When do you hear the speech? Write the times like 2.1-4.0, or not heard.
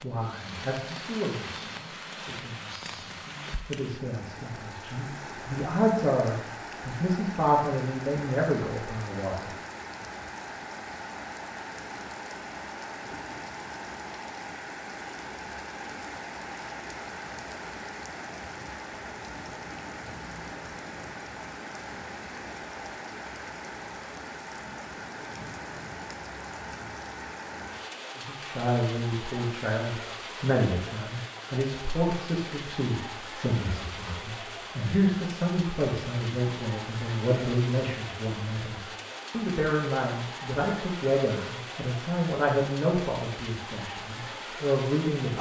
0.0-9.5, 28.1-45.3.